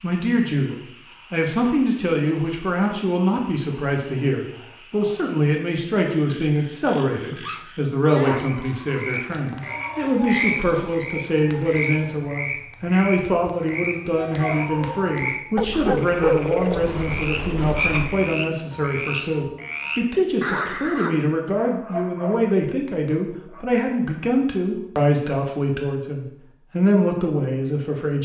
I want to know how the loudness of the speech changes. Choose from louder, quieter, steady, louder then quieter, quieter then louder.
steady.